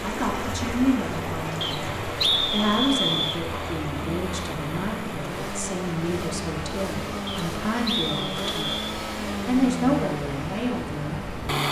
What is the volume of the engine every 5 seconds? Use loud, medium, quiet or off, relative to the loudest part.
medium, loud, loud.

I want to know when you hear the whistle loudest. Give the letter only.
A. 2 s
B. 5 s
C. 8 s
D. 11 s
A.